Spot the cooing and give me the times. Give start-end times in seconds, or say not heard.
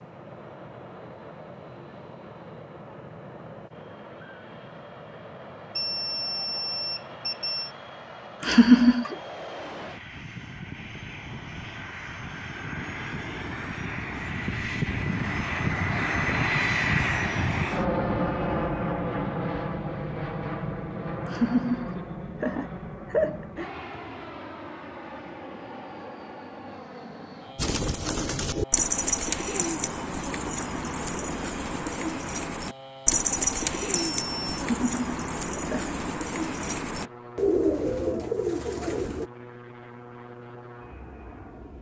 27.6-39.3.